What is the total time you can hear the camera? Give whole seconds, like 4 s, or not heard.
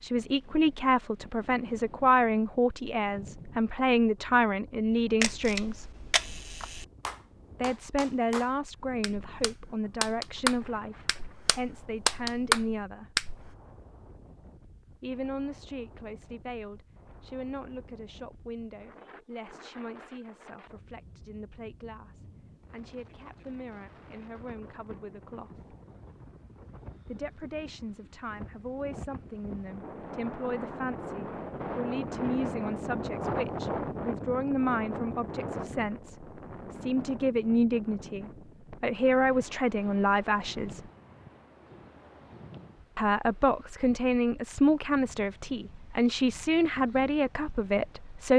2 s.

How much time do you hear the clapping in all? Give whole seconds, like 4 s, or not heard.
7 s.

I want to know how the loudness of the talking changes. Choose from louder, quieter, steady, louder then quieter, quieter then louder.
quieter then louder.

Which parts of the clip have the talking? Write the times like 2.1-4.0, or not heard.
0.0-5.8, 7.5-13.1, 15.0-25.6, 27.1-40.8, 43.0-48.3.